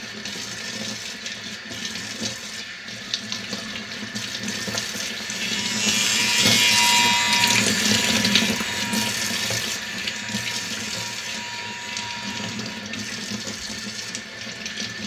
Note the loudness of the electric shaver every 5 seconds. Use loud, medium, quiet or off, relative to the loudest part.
off, loud, quiet.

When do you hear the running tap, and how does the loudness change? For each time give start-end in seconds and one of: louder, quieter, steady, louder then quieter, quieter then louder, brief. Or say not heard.
0.0-15.0 louder then quieter.